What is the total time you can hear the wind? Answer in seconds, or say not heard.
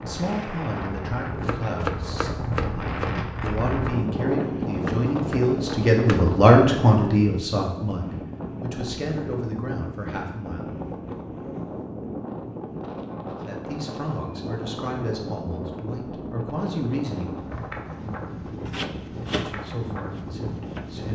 21 s.